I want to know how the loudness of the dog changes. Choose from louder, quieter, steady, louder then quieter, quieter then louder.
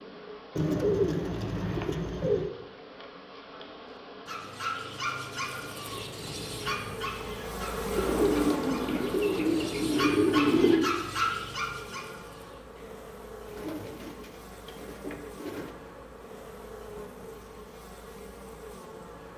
quieter then louder.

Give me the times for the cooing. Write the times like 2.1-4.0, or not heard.
0.6-2.5, 8.0-10.9, 13.4-15.8.